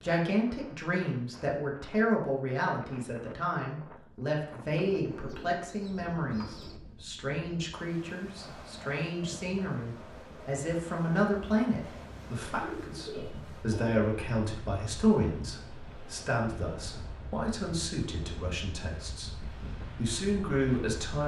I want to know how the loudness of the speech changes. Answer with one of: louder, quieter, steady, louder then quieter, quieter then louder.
steady.